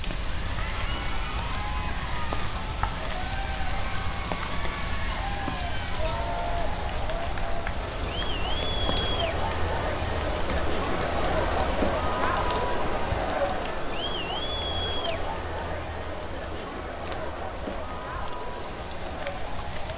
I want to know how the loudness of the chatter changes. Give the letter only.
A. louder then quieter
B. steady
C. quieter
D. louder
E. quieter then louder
A.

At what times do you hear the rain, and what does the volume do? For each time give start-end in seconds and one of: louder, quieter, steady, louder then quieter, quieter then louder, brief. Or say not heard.
0.0-19.9 quieter.